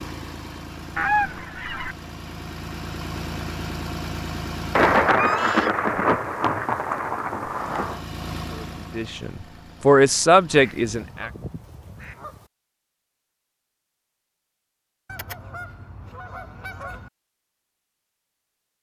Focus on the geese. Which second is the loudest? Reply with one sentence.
The loudest moment of the geese is at 1 second.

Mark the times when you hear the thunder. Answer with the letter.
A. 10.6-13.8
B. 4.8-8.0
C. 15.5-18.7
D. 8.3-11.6
B.